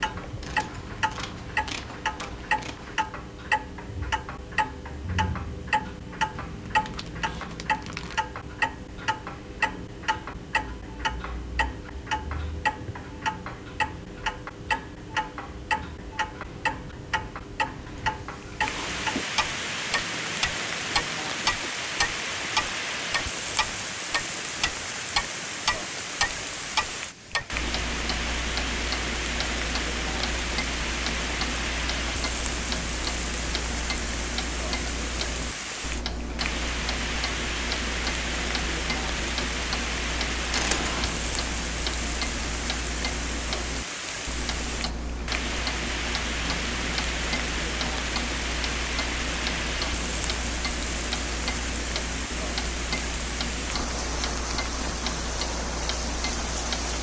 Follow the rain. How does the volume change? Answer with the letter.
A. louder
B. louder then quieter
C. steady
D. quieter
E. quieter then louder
C.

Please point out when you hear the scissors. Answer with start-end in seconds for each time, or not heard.
0.4-3.1, 40.5-41.2.